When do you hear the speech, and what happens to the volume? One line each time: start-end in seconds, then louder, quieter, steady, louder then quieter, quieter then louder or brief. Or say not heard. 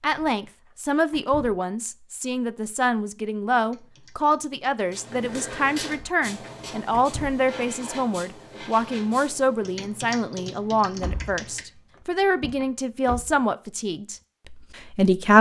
0.0-15.3 steady.